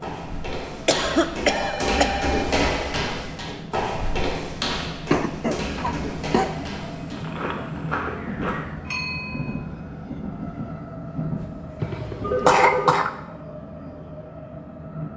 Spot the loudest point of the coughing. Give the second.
13 s.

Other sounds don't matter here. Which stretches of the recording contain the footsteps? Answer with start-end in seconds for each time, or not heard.
0.0-8.8.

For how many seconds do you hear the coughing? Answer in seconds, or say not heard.
4 s.